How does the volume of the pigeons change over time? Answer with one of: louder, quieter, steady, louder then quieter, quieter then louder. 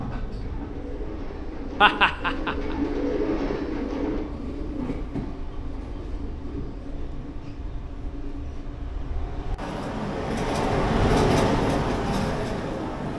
louder then quieter.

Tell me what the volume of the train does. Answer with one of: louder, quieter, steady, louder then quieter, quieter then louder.
louder.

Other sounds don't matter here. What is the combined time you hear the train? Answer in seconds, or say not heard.
13 s.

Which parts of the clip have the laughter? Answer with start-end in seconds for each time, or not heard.
1.8-2.8.